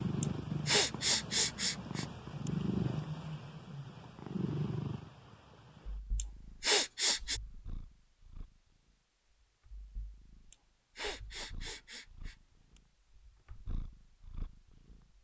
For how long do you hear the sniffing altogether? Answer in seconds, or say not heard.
6 s.